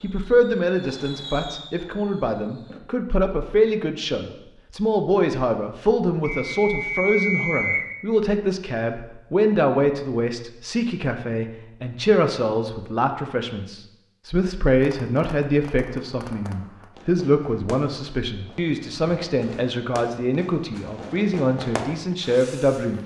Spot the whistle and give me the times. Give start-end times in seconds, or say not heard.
6.2-7.9.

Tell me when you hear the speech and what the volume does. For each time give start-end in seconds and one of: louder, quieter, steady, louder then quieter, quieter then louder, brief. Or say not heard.
0.0-23.0 steady.